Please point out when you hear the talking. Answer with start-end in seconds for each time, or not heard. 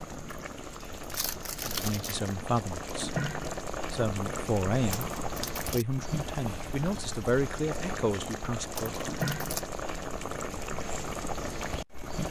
1.6-9.0.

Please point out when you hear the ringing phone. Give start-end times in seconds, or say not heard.
not heard.